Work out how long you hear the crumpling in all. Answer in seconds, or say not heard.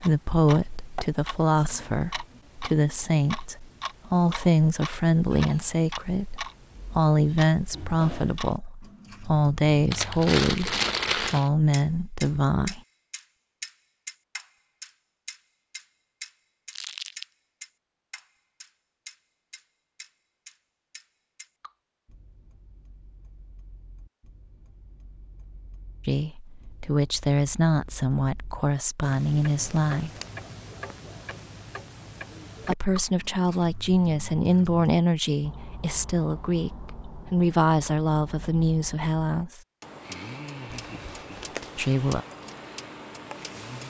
3 s.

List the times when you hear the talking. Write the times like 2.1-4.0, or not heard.
0.0-12.8, 26.1-30.1, 32.6-39.6, 41.8-42.2.